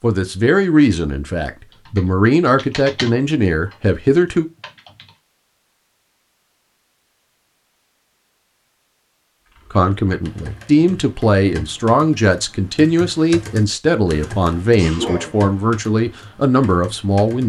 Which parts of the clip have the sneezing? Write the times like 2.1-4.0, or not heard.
14.1-15.4.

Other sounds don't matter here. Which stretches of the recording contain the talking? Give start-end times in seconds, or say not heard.
0.0-4.5, 9.7-17.4.